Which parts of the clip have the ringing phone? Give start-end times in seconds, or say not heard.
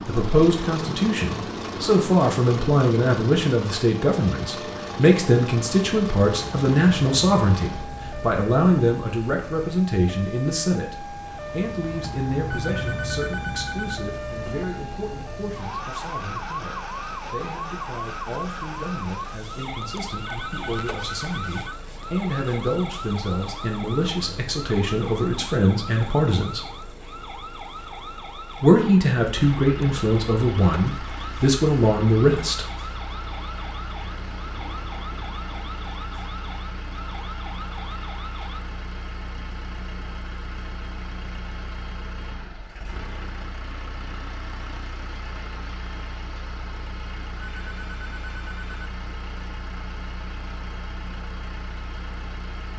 12.4-13.9, 20.2-21.8, 47.5-48.9.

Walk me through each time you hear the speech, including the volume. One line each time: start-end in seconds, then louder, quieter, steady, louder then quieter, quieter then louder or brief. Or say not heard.
0.1-26.6 quieter then louder
28.6-32.6 steady.